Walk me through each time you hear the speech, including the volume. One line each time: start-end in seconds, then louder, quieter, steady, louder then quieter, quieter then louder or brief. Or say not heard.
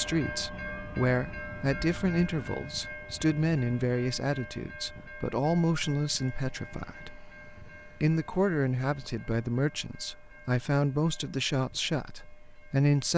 0.0-13.1 steady.